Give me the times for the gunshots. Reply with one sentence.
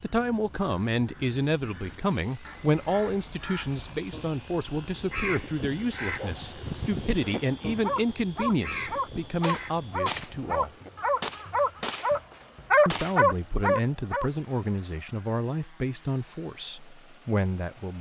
The gunshots can be heard from 9.4 to 10.3 s and from 11.2 to 13.2 s.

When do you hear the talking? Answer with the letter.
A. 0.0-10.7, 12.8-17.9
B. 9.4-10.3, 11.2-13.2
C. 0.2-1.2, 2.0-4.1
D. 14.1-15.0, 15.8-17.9
A.